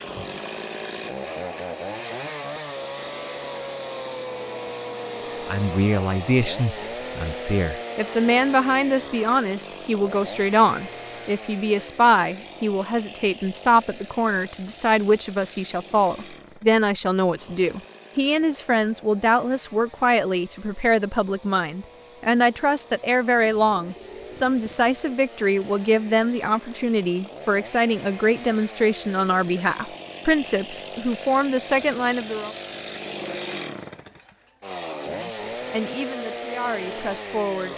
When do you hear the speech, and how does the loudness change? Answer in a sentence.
The speech can be heard from 5.5 to 32.5 s, at a steady volume; and briefly from 35.1 to 37.7 s.